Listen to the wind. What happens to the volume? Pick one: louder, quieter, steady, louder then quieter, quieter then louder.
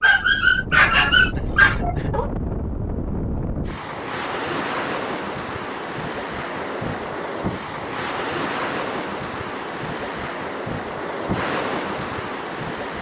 steady.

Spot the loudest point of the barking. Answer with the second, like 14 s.
1 s.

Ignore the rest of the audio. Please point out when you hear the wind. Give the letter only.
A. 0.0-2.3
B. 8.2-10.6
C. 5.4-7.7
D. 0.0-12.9
D.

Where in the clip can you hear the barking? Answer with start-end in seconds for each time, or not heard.
0.0-2.3.